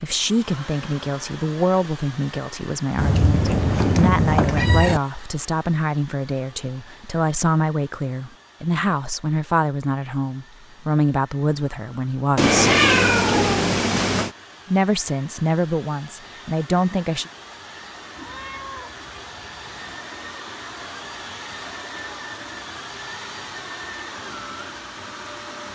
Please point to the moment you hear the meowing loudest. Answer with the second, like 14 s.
13 s.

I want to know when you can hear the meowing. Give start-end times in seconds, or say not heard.
3.0-5.0, 12.3-14.3, 18.1-19.9.